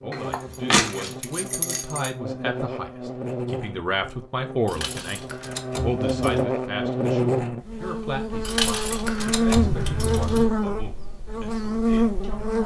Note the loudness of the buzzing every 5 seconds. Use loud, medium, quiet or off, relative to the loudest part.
medium, loud, loud.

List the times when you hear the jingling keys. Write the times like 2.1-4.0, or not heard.
0.1-2.1, 4.7-6.5, 8.4-10.4.